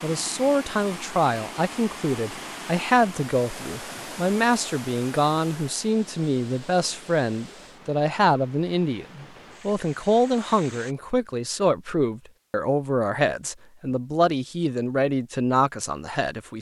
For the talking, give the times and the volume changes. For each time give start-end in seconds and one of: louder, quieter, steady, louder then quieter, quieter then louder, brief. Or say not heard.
0.0-16.5 steady.